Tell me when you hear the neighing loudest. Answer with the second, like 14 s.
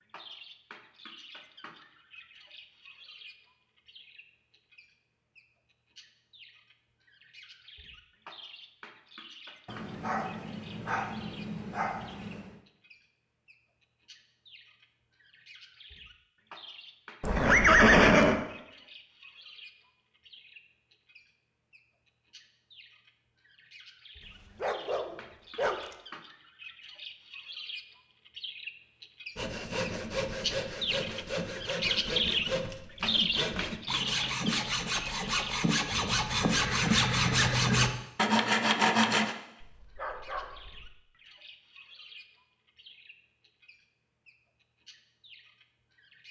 18 s.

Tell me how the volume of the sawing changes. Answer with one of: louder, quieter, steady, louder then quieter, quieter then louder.
louder.